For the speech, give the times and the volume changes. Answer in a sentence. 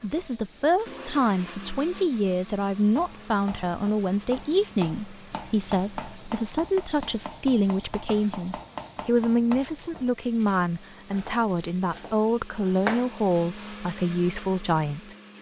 You can hear the speech from 0.0 to 15.2 s, at a steady volume.